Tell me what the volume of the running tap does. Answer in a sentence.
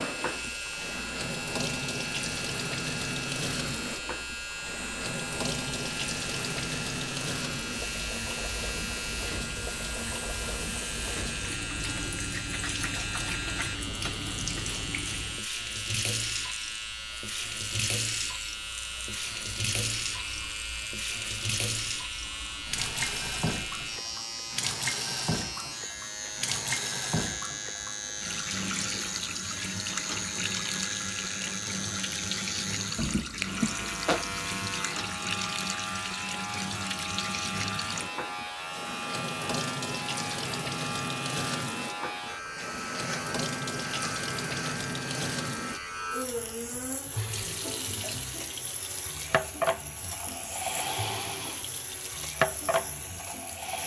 The loudness of the running tap stays about the same.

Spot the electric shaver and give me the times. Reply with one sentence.
You can hear the electric shaver from 0.0 to 53.8 s.